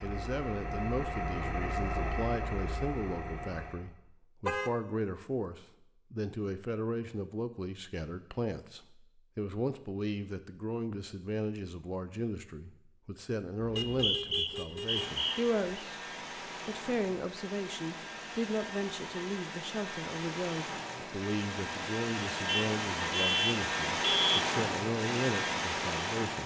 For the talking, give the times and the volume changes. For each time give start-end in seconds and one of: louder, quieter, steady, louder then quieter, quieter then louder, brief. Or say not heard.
0.0-16.0 steady
16.6-26.4 steady.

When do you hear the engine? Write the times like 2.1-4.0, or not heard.
0.0-3.9, 14.8-26.4.